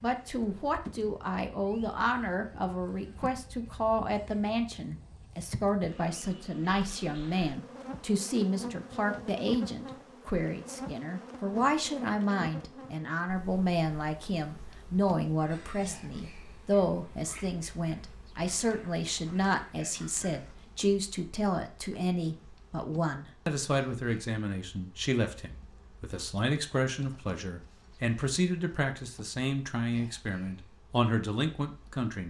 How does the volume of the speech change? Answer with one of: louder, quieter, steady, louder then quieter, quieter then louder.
steady.